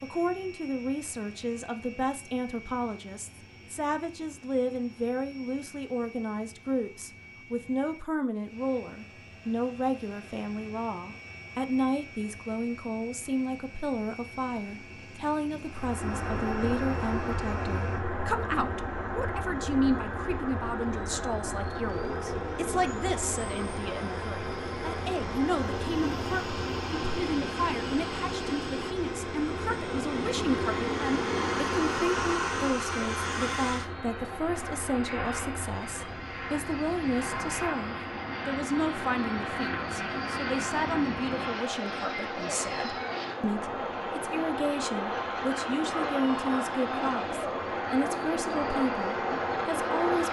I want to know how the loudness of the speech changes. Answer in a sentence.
The loudness of the speech stays about the same.